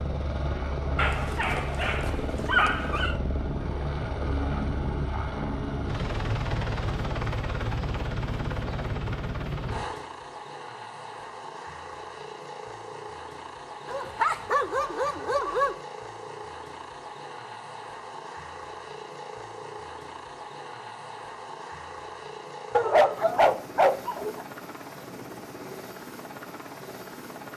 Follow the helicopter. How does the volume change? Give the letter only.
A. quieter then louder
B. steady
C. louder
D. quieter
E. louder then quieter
D.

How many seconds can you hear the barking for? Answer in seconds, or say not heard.
6 s.